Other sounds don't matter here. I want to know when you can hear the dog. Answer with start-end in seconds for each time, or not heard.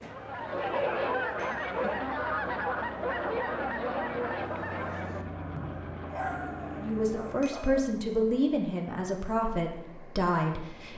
0.0-2.0, 6.1-7.9.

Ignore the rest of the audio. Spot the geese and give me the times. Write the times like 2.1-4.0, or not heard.
0.0-5.8.